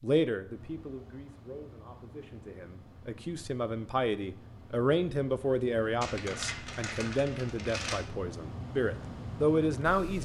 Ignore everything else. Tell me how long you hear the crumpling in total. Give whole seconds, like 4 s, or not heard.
2 s.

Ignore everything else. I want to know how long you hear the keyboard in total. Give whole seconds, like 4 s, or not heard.
not heard.